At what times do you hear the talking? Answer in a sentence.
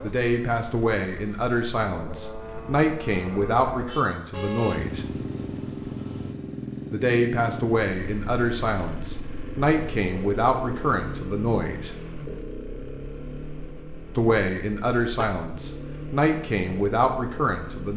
The talking can be heard from 0.0 to 5.0 s, from 6.9 to 11.9 s and from 14.2 to 17.9 s.